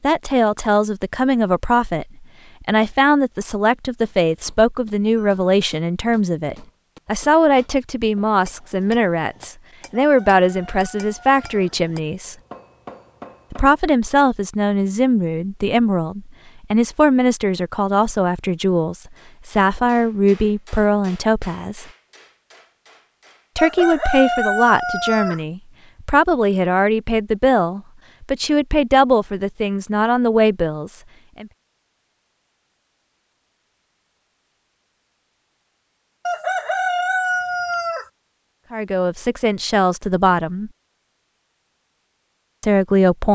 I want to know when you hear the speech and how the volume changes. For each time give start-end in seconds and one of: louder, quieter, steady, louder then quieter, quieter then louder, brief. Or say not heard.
0.0-12.3 steady
13.5-21.9 steady
23.6-31.4 steady
38.7-40.7 brief
42.6-43.3 brief.